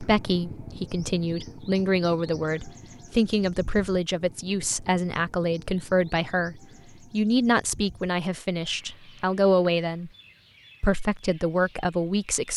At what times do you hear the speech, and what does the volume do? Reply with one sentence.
The speech can be heard from 0.0 to 10.1 s, at a steady volume; and briefly from 10.8 to 12.5 s.